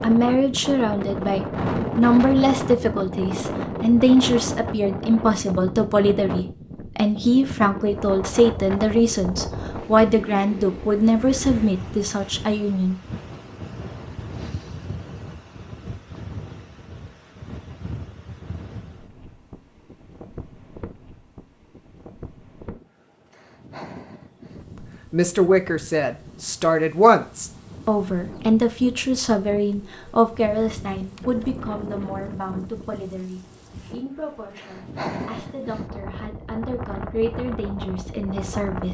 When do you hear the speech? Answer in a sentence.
You can hear the speech from 0.0 to 12.9 s and from 24.8 to 38.8 s.